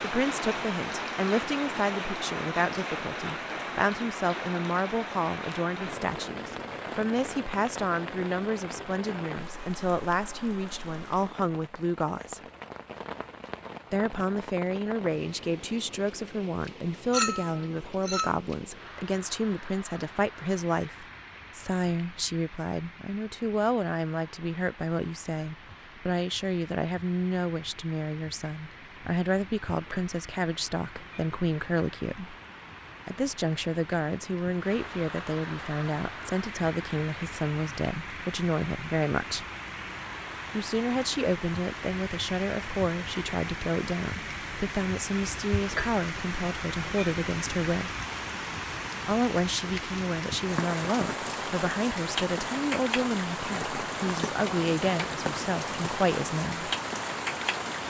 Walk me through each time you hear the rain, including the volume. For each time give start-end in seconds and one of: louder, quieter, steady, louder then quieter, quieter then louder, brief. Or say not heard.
0.0-57.8 quieter then louder.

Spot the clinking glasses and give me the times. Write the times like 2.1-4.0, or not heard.
17.1-18.4.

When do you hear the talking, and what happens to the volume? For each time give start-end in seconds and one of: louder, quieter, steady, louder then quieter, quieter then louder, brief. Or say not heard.
0.0-12.4 steady
13.9-32.4 steady
33.0-39.5 steady
40.5-47.9 steady
49.0-56.7 steady.